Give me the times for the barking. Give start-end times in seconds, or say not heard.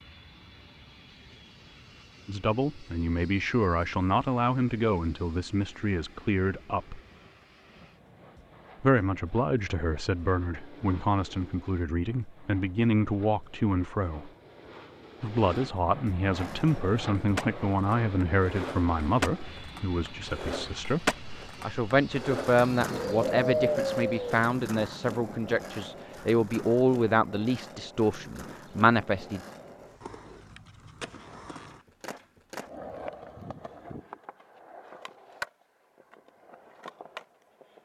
not heard.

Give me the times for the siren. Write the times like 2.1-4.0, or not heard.
not heard.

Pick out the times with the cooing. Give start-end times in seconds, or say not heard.
22.9-24.5.